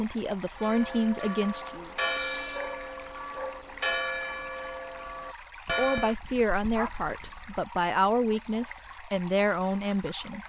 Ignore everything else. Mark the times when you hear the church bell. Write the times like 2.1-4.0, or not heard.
0.6-6.2.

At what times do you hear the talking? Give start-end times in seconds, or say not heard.
0.0-1.9, 5.8-10.4.